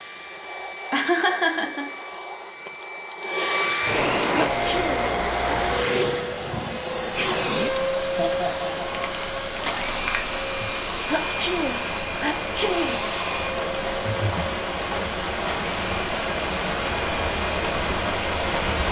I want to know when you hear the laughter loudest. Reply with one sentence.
The loudest moment of the laughter is at 1 second.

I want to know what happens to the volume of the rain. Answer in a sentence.
The loudness of the rain goes up.